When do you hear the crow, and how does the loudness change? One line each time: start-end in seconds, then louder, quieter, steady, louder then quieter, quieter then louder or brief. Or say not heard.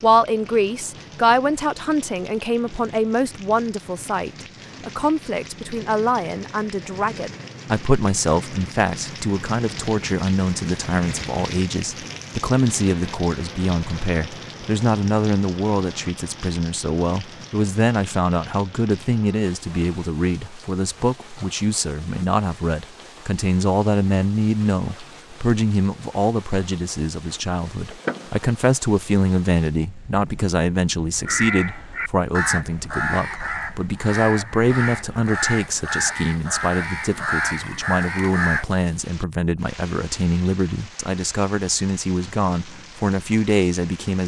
31.2-38.6 steady.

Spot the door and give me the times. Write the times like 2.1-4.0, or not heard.
27.9-28.5.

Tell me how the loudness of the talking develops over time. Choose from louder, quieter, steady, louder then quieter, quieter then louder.
steady.